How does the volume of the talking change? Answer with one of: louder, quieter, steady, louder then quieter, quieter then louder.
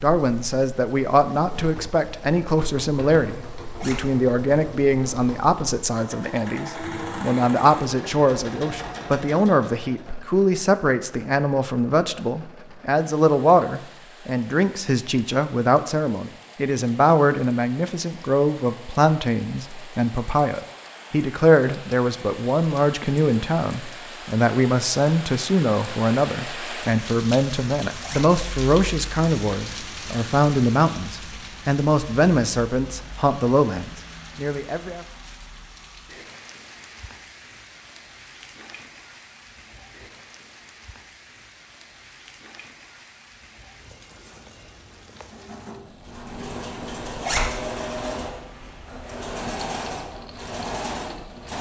steady.